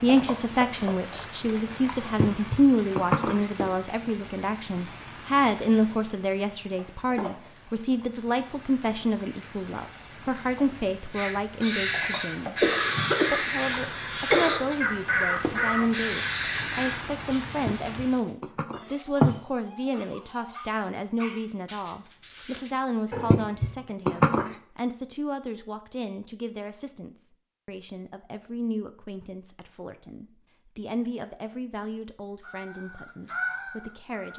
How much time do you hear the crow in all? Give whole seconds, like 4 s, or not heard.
8 s.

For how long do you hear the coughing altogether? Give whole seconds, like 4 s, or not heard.
2 s.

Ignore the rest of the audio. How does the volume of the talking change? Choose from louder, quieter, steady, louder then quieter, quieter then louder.
quieter.